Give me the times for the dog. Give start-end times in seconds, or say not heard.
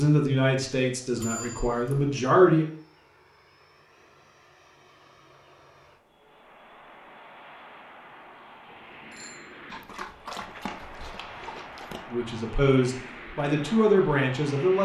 9.7-12.1.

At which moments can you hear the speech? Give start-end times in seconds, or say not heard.
0.0-2.6, 12.1-14.8.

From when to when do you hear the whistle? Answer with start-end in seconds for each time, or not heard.
not heard.